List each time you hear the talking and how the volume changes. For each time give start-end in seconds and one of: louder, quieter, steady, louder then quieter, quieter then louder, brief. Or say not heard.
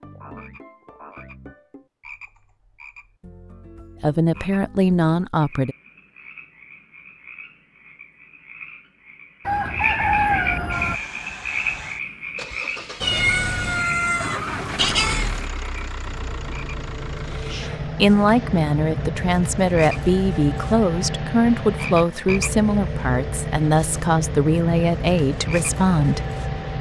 4.0-5.8 brief
17.3-26.2 steady.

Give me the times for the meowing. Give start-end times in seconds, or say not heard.
13.0-15.5.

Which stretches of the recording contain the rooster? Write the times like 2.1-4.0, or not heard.
9.4-11.0.